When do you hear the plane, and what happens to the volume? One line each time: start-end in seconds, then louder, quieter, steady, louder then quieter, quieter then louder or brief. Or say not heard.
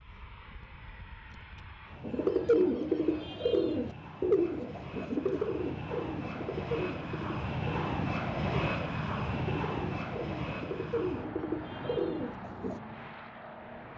0.0-13.9 louder then quieter.